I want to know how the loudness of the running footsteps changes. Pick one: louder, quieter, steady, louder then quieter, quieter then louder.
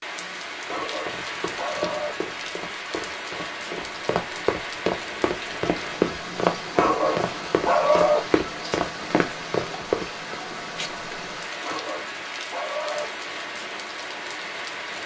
louder.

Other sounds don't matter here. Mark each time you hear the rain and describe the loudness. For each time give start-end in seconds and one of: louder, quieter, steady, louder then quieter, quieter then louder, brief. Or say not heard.
0.0-15.0 steady.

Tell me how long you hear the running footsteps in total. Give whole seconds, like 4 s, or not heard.
10 s.